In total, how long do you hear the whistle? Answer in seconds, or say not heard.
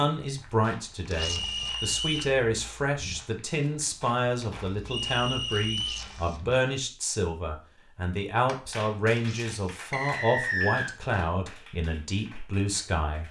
3 s.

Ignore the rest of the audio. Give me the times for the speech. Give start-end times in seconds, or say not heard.
0.0-13.2.